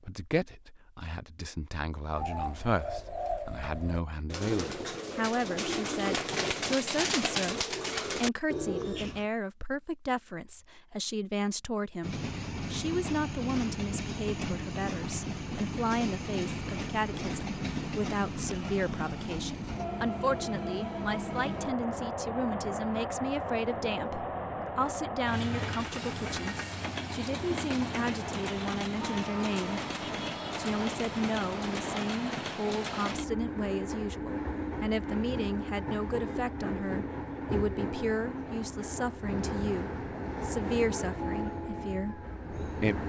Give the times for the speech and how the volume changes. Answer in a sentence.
The speech can be heard from 0.0 to 29.8 s, at a steady volume; and from 30.6 to 43.0 s, at a steady volume.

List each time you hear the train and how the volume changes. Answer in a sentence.
You can hear the train from 12.0 to 43.0 s, at a steady volume.